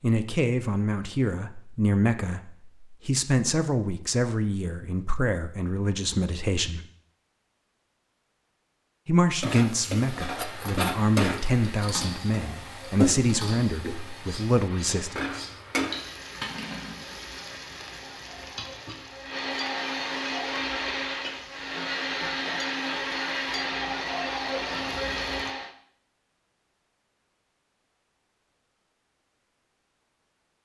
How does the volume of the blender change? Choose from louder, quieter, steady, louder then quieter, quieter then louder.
louder.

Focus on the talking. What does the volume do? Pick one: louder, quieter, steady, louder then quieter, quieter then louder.
steady.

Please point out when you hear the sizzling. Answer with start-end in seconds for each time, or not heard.
9.4-25.5.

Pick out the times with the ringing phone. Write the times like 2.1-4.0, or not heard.
not heard.